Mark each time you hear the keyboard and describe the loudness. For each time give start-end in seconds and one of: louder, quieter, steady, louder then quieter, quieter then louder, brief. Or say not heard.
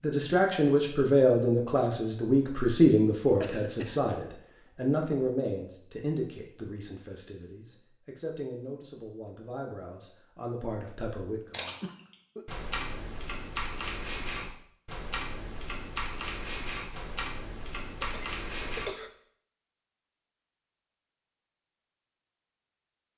11.5-18.9 steady.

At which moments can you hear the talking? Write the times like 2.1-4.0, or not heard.
0.0-11.8.